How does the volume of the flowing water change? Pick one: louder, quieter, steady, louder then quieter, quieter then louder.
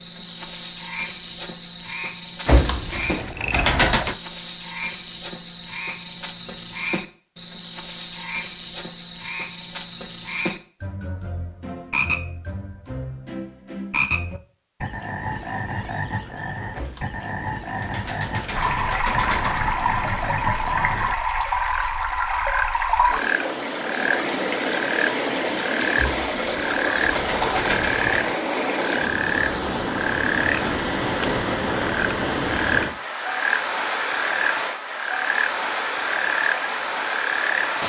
steady.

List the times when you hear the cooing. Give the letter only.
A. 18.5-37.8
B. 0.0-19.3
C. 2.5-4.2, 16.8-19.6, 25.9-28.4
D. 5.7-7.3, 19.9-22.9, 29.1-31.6
C.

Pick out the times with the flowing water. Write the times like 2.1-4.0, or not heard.
18.5-37.8.